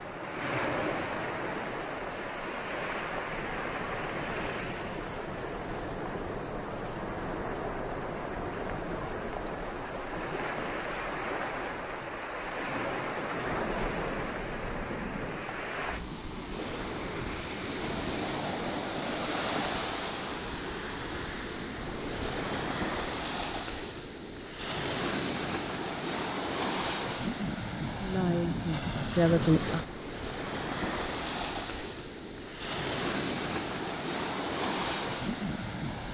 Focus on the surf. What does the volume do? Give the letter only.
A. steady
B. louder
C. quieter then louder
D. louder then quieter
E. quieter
A.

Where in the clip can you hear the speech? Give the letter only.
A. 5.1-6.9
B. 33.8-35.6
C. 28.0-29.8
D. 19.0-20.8
C.